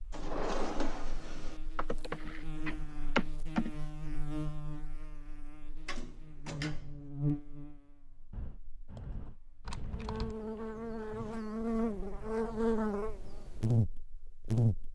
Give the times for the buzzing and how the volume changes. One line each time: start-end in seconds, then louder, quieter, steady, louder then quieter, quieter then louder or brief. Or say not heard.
0.0-14.9 louder.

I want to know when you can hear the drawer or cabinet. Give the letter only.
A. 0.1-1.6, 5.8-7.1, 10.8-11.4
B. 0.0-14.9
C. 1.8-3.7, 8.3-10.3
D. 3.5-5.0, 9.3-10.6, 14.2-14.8
A.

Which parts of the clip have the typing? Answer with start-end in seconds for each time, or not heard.
1.8-3.7, 8.3-10.3.